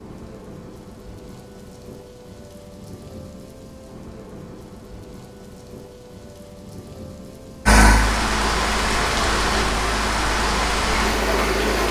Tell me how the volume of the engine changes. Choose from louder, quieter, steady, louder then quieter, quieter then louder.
steady.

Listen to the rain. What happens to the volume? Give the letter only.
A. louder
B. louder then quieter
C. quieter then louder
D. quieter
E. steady
A.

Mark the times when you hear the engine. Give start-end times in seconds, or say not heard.
7.7-11.8.